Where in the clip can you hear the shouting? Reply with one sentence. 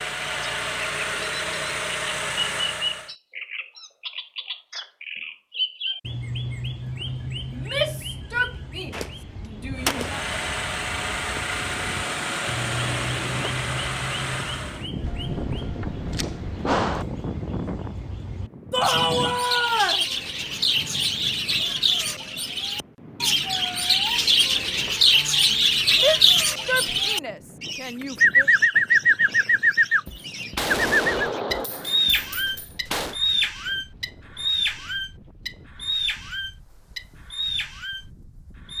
The shouting can be heard from 7.5 to 10.2 s, from 18.7 to 20.1 s and from 25.9 to 28.5 s.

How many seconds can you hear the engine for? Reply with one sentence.
The engine can be heard for 8 seconds in total.